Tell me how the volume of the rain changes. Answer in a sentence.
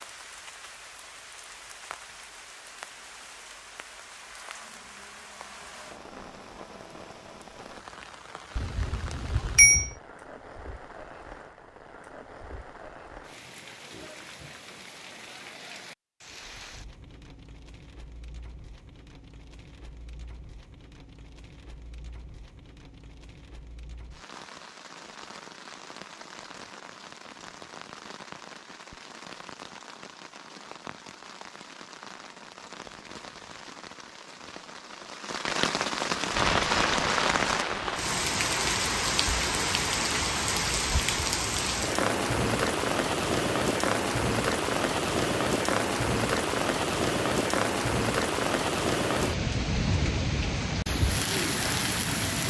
The volume of the rain goes up.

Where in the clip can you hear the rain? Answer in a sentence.
The rain can be heard from 0.0 to 52.4 s.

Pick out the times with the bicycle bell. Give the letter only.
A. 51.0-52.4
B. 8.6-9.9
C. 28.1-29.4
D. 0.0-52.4
B.